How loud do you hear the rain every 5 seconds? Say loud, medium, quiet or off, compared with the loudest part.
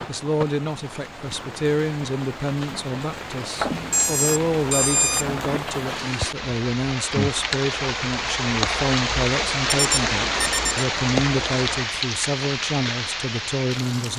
medium, loud, loud.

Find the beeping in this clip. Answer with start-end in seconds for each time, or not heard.
3.6-5.5, 9.7-10.8.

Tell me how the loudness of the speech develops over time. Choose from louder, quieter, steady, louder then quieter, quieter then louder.
steady.